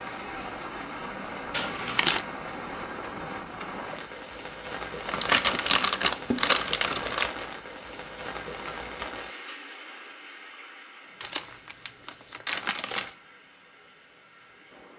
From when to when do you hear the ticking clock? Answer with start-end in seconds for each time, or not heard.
not heard.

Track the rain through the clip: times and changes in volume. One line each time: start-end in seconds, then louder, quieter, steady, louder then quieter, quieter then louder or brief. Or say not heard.
0.0-14.9 quieter.